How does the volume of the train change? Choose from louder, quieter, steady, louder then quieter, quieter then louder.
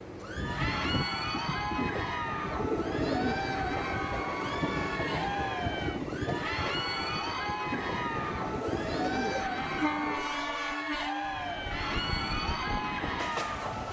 steady.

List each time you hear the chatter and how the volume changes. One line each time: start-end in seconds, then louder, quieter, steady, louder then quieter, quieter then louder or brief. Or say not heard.
0.1-13.8 steady.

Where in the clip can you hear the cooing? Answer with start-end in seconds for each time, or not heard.
1.8-3.4, 7.7-10.3.